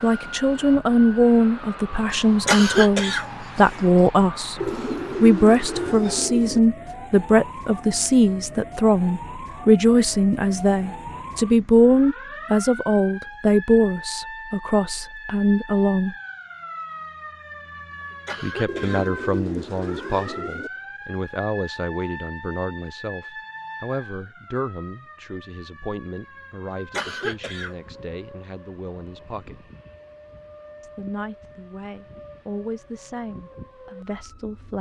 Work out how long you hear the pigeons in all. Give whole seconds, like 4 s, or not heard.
4 s.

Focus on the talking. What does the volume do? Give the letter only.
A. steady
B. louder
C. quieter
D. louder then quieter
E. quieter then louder
C.